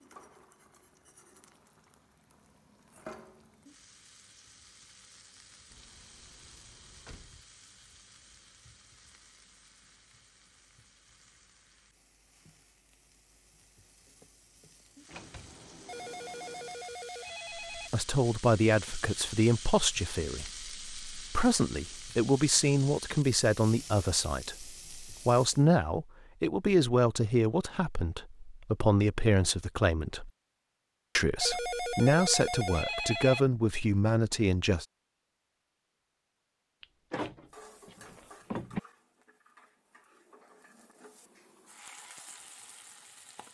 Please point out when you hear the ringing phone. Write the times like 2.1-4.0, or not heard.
15.8-17.9, 31.4-33.4.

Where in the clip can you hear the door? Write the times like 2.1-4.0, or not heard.
5.7-7.5, 15.1-16.9, 36.8-38.8.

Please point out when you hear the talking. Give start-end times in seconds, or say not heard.
17.9-30.3, 31.1-34.9.